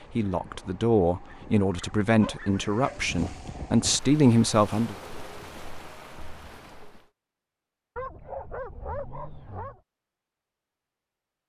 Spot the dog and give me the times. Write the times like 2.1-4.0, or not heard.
1.2-3.0, 8.0-9.8.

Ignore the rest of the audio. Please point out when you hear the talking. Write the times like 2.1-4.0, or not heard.
0.1-5.0.